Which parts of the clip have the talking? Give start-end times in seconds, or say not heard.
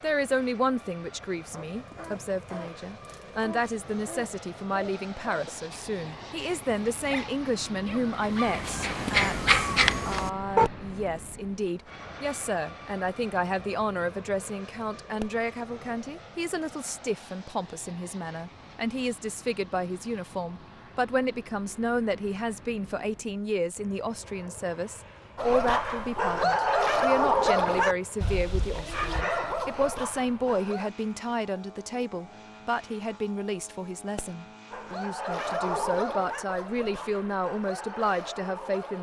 0.0-38.9.